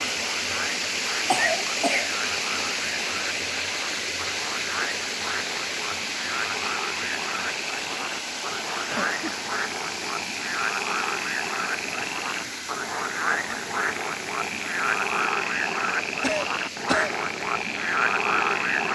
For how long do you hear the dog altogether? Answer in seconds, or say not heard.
not heard.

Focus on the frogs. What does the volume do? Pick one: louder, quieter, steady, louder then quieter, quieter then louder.
louder.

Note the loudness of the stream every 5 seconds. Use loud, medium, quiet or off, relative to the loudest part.
loud, loud, medium, medium.